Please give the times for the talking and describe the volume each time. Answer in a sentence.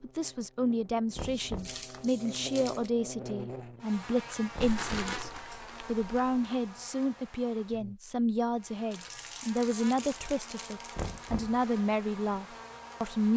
The talking can be heard from 0.0 to 13.3 s, at a steady volume.